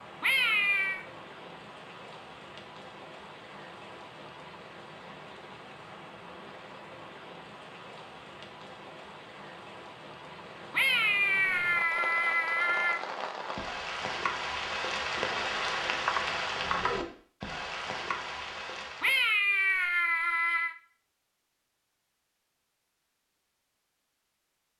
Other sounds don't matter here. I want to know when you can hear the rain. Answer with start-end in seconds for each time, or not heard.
0.0-19.4.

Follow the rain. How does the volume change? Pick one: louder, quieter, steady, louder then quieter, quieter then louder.
louder.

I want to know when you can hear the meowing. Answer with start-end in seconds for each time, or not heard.
0.2-1.1, 10.7-13.0, 19.0-20.8.